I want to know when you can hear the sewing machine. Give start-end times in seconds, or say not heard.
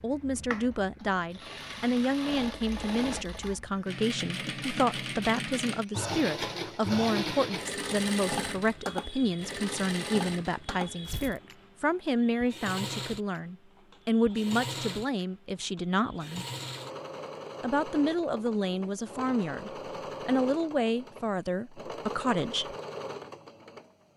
0.0-24.1.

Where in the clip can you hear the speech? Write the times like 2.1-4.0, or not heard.
0.0-16.4, 17.6-22.8.